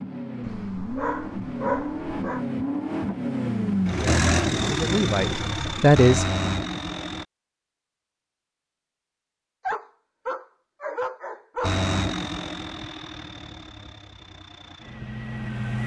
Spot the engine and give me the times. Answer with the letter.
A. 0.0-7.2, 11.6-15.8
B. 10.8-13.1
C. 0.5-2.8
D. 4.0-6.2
A.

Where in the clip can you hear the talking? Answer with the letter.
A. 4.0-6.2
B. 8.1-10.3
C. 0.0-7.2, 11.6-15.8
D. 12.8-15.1
A.